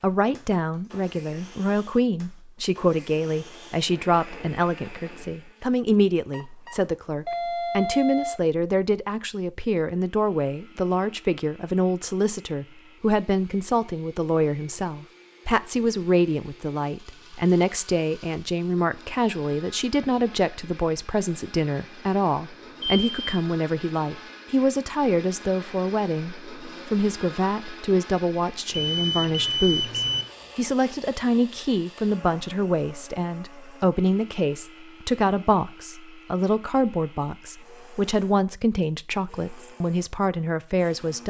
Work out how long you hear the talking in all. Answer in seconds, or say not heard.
41 s.